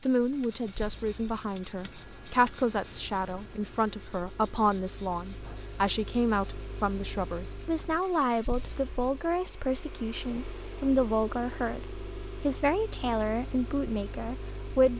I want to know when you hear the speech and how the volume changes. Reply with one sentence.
You can hear the speech from 0.0 to 14.9 s, at a steady volume.